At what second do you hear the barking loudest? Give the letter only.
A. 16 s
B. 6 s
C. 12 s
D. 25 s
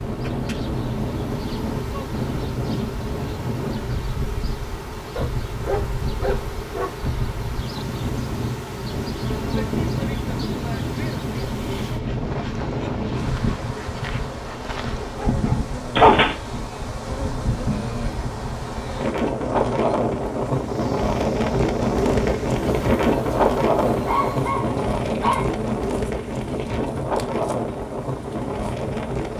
A.